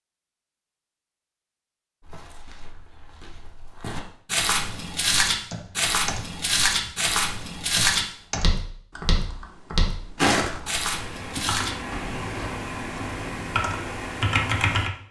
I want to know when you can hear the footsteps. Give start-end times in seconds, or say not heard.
2.0-12.5.